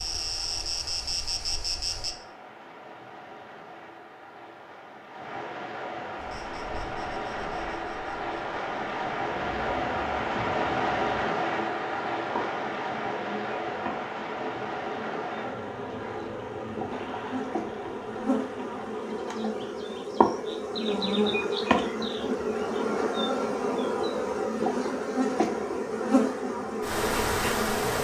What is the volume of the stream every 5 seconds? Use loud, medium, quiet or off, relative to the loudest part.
quiet, loud, loud, medium, off, off.